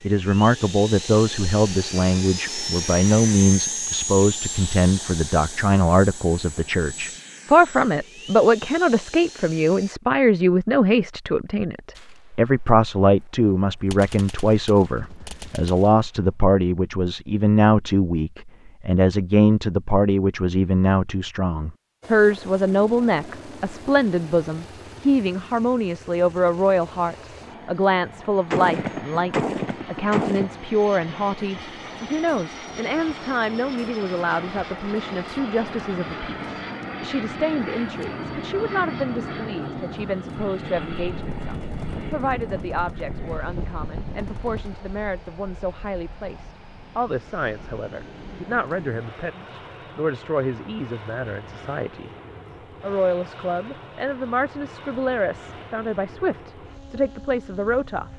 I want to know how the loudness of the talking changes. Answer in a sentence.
The loudness of the talking goes down.